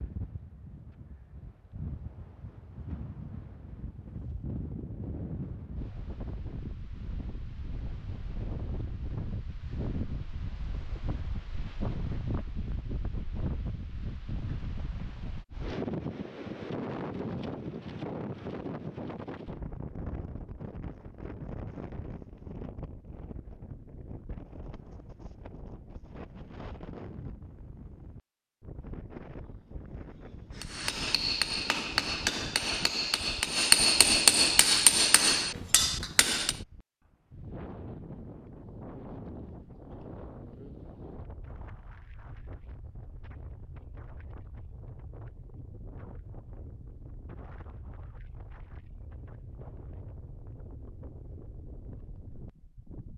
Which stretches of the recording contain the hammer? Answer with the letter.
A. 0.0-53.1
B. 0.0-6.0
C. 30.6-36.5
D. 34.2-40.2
C.